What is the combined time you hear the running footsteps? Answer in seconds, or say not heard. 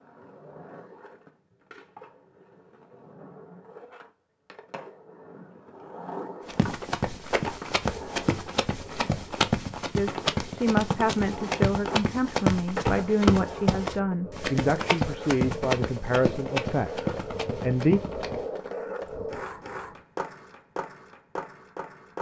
12 s.